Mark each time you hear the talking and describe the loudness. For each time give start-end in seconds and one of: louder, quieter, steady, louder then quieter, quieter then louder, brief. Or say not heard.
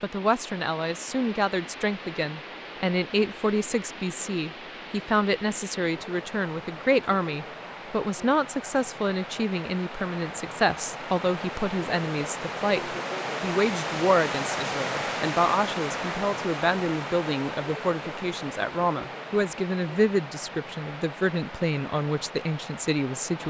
0.0-23.4 steady.